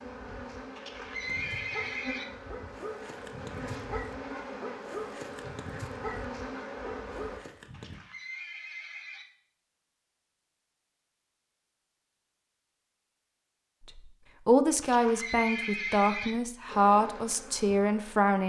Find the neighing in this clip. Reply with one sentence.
You can hear the neighing from 0.8 to 2.2 s, from 7.7 to 9.2 s and from 14.8 to 16.4 s.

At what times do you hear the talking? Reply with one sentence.
You can hear the talking from 13.9 to 18.4 s.